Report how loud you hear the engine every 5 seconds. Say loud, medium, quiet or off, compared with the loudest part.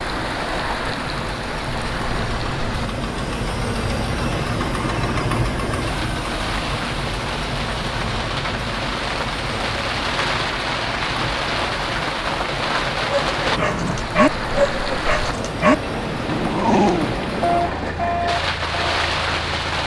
loud, loud, medium, medium.